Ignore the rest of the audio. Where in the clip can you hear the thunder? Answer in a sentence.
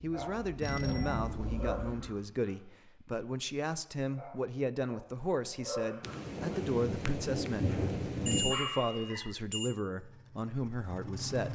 You can hear the thunder from 6.0 to 8.6 s.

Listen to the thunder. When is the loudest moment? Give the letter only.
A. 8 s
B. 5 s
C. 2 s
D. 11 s
A.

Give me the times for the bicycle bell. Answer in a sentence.
You can hear the bicycle bell from 0.6 to 1.4 s and from 8.2 to 9.8 s.